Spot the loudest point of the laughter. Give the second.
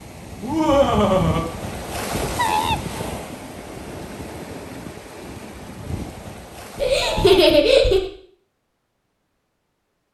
7 s.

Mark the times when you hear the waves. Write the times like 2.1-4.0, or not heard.
0.0-7.6.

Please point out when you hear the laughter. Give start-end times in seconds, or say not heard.
0.4-1.4, 6.8-8.1.